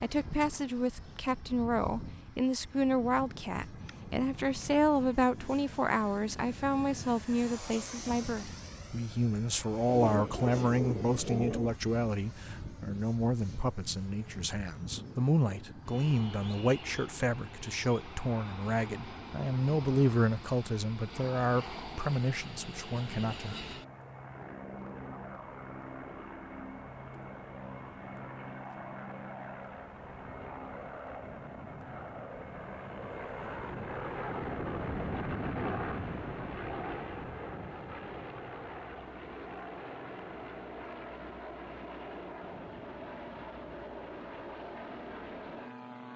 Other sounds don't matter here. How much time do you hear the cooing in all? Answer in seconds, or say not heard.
2 s.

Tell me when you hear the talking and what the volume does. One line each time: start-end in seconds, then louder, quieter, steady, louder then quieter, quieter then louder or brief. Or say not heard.
0.0-23.6 steady.